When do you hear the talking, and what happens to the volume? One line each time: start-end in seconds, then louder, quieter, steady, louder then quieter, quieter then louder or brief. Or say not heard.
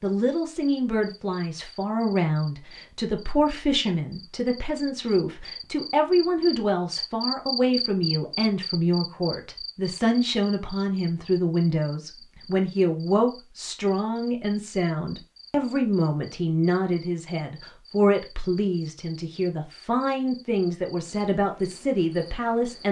0.0-22.8 steady.